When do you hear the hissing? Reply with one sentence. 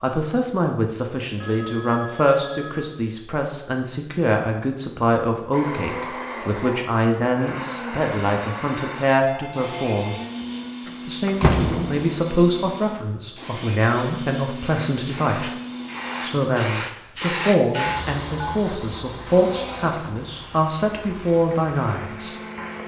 The hissing can be heard from 14.7 to 22.8 s.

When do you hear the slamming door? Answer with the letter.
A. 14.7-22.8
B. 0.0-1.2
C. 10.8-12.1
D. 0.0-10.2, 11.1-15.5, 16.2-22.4
C.